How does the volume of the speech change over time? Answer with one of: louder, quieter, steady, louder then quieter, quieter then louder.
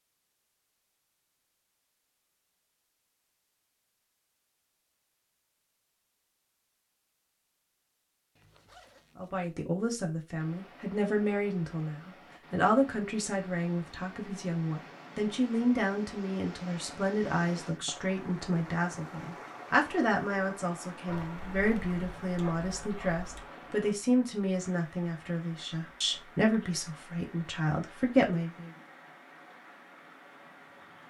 steady.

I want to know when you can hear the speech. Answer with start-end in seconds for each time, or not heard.
9.2-28.7.